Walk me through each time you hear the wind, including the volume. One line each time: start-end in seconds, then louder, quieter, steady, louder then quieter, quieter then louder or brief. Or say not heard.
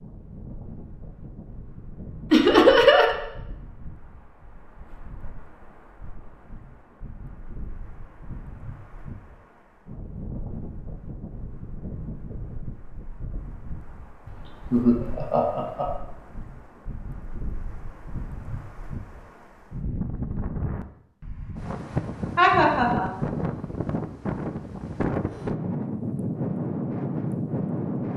0.0-28.1 louder.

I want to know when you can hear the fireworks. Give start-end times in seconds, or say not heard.
not heard.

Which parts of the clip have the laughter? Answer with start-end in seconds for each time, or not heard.
2.3-3.1, 14.2-15.8, 22.4-23.1.